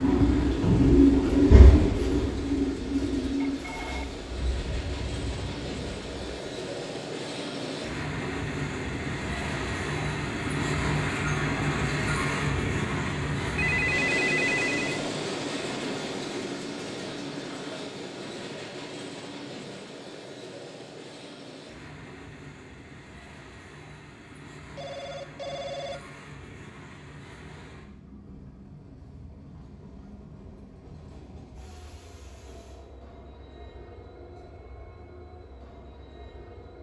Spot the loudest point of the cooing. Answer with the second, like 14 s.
1 s.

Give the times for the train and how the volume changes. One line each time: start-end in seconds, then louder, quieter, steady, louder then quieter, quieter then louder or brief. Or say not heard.
0.0-36.7 louder then quieter.